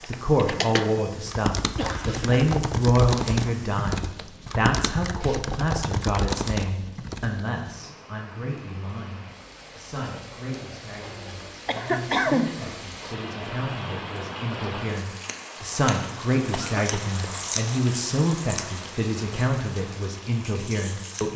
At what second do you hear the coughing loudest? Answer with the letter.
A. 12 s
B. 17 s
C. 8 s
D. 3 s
A.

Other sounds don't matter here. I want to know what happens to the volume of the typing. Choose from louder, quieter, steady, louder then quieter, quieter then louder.
steady.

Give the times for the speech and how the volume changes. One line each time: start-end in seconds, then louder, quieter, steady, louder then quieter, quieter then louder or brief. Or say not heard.
0.1-21.3 quieter then louder.